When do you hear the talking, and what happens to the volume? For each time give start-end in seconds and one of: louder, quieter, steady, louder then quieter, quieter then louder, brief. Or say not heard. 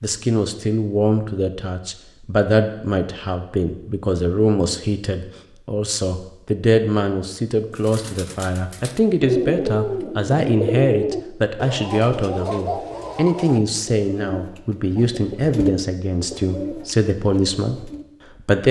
0.0-18.6 steady.